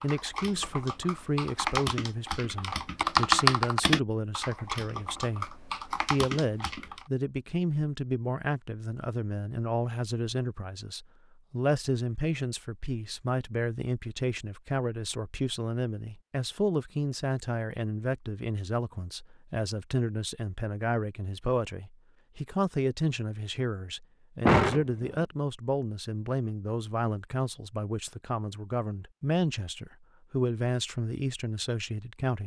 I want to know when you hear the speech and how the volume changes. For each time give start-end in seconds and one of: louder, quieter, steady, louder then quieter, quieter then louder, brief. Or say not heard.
0.0-32.4 steady.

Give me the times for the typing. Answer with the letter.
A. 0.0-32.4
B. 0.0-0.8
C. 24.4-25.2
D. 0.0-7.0
D.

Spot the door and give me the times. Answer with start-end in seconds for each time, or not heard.
24.4-25.2.